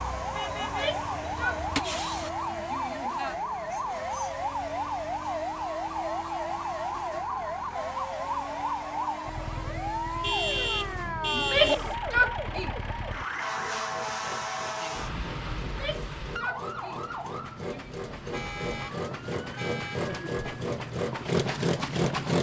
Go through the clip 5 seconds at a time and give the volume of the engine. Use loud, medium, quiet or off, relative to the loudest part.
quiet, quiet, quiet, medium, loud.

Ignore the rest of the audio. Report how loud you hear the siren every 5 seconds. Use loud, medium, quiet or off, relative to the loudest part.
loud, loud, loud, medium, off.